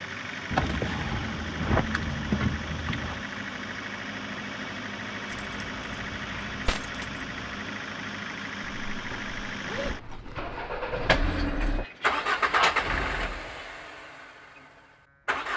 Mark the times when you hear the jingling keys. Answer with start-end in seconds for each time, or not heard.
0.5-3.2, 5.2-7.5, 10.9-12.8.